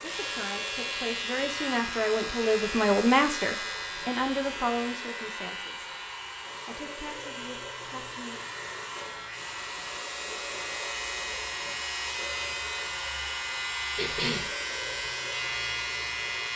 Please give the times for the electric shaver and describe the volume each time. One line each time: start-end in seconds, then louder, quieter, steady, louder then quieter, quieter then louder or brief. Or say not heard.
0.0-16.5 quieter then louder.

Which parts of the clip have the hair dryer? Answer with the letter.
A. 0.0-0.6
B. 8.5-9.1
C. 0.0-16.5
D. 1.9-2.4
C.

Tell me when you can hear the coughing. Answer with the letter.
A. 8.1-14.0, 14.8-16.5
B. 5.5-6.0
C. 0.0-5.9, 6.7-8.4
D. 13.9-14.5
D.